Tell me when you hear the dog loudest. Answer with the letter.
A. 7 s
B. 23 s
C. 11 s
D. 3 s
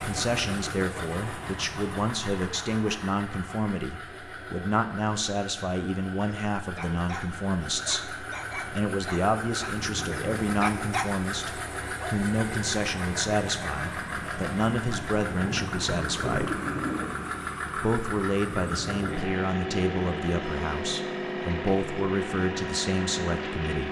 C.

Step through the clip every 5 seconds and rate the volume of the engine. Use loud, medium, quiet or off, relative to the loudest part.
medium, medium, loud, loud, loud.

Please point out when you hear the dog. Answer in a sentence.
The dog can be heard from 6.2 to 12.2 s.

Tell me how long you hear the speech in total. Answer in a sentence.
You can hear the speech for 23 seconds altogether.